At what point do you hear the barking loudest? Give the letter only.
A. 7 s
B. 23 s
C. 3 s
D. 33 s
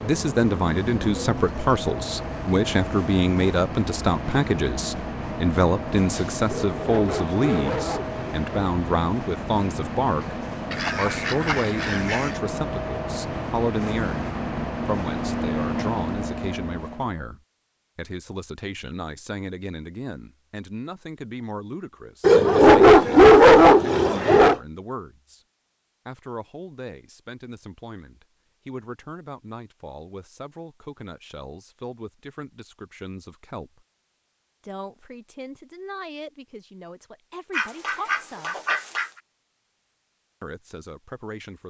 B.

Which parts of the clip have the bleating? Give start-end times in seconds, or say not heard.
not heard.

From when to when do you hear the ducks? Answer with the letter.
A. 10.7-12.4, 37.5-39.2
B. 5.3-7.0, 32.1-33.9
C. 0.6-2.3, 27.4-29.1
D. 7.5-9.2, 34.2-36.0
A.